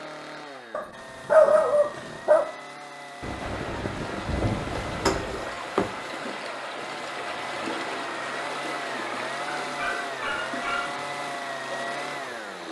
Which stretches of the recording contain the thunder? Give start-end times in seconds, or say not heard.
3.2-5.2.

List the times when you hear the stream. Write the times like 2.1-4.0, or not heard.
3.5-12.6.